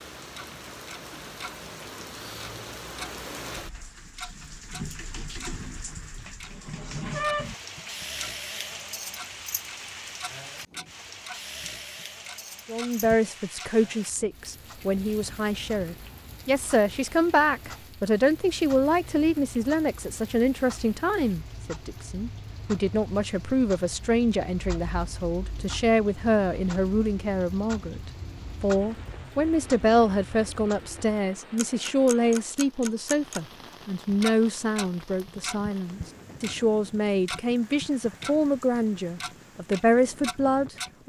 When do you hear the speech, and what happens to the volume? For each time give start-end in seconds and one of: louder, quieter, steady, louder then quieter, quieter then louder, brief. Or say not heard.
12.7-41.0 steady.